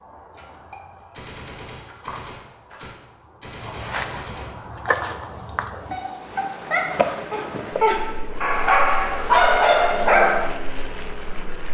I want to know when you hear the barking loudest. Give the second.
9 s.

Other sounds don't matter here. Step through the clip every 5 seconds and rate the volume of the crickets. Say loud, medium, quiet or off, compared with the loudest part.
loud, loud, quiet.